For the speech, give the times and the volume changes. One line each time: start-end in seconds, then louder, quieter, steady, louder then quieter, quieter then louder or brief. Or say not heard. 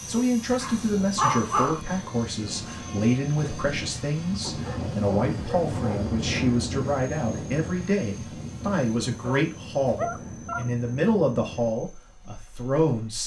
0.1-13.2 steady.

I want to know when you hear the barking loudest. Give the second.
1 s.